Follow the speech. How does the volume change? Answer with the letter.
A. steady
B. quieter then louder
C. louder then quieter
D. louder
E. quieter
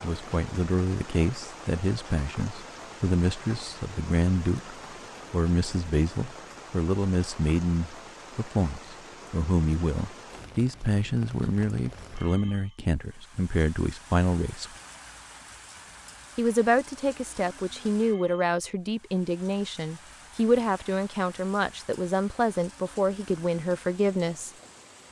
A.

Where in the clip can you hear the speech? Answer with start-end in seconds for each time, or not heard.
0.0-14.7, 16.4-24.5.